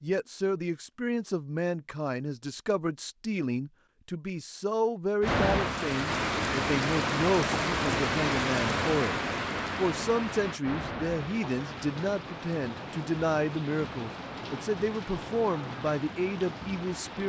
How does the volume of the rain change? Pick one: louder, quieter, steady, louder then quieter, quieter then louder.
quieter.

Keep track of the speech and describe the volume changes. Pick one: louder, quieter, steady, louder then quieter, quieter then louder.
steady.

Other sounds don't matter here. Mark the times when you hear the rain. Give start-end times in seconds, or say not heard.
5.2-17.2.